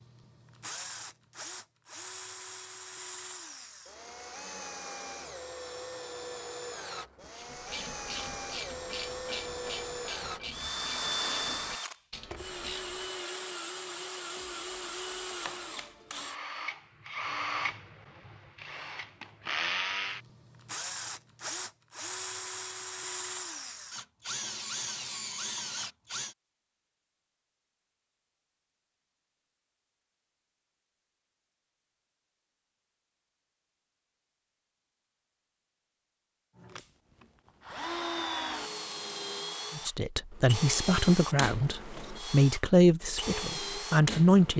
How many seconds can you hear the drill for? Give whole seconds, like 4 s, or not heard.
34 s.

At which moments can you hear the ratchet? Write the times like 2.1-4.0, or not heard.
7.3-13.3.